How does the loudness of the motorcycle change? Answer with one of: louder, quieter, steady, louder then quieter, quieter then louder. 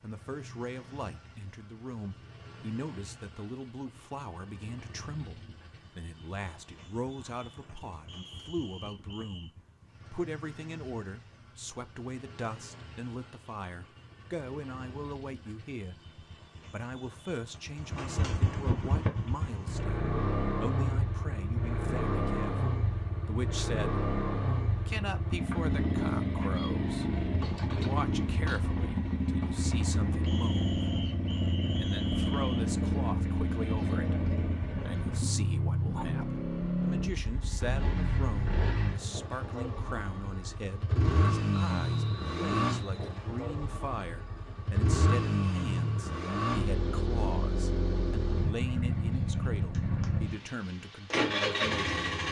louder.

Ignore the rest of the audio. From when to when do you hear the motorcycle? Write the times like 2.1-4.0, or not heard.
0.0-52.2.